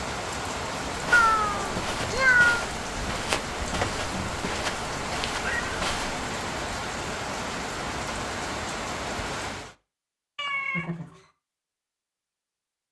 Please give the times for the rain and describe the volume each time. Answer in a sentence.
The rain can be heard from 0.0 to 9.8 s, at a steady volume.